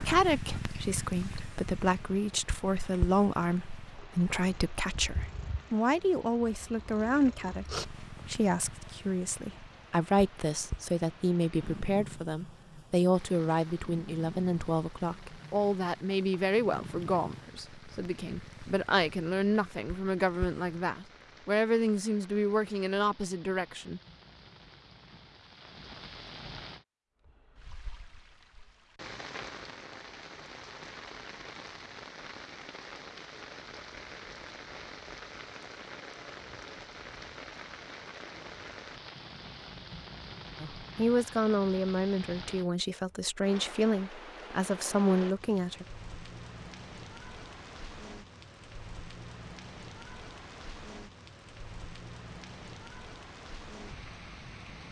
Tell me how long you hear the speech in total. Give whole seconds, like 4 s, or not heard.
29 s.